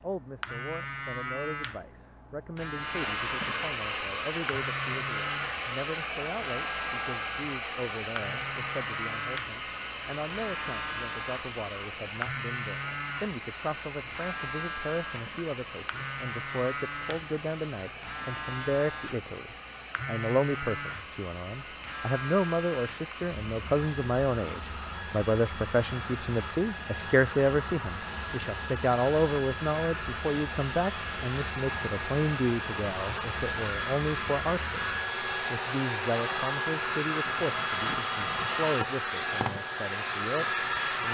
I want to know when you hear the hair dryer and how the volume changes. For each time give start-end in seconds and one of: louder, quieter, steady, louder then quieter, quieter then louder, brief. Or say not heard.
2.7-41.0 quieter then louder.